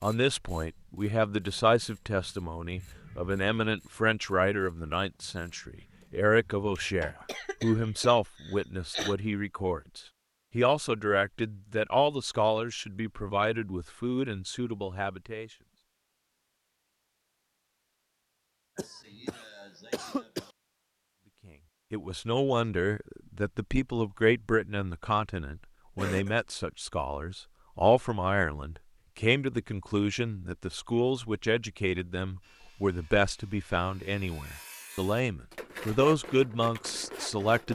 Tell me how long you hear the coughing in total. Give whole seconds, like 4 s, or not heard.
4 s.